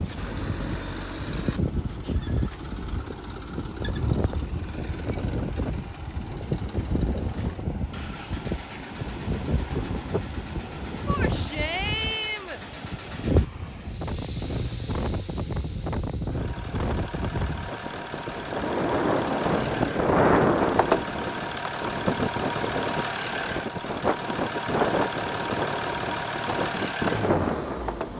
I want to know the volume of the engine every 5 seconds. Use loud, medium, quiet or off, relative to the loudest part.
medium, quiet, quiet, medium, loud, loud.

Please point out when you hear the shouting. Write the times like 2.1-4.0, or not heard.
11.1-12.6.